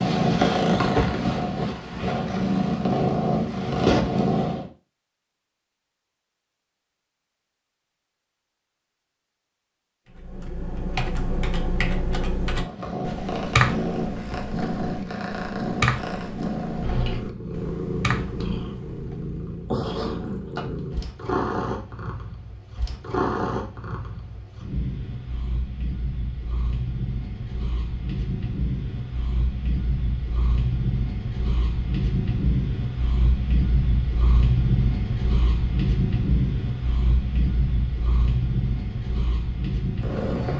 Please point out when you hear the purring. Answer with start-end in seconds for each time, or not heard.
0.0-4.7, 12.5-40.5.